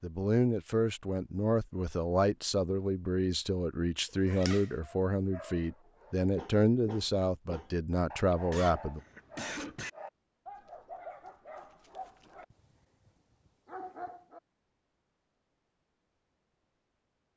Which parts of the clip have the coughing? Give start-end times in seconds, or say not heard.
8.3-9.9.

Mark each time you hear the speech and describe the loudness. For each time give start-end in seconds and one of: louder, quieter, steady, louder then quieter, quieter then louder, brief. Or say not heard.
0.0-9.0 steady.